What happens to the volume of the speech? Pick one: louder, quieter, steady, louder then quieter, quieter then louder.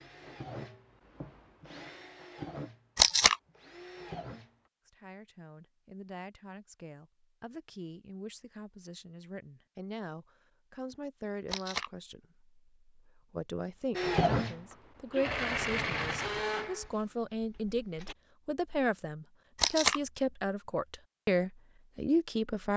louder.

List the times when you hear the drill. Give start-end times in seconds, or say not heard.
0.0-4.5, 13.9-18.1.